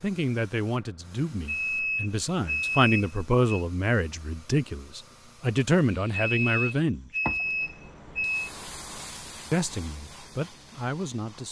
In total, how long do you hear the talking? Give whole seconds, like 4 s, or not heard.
9 s.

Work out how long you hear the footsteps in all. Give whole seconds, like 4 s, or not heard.
not heard.